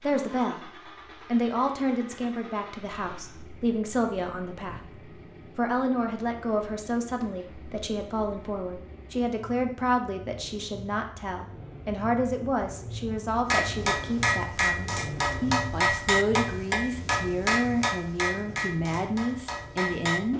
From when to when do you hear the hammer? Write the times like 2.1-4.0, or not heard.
13.5-20.3.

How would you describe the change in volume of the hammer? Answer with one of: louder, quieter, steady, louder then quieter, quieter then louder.
quieter.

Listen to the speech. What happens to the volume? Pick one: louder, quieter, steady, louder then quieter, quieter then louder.
steady.